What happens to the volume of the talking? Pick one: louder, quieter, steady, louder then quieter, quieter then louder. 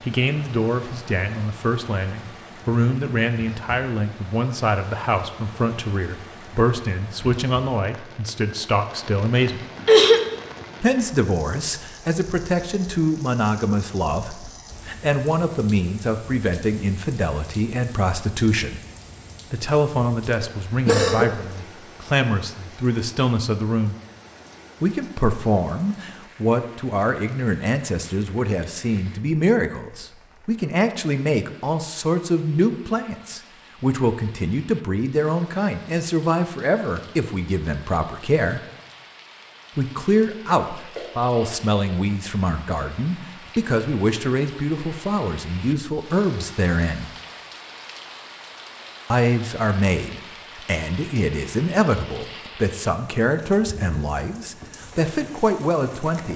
steady.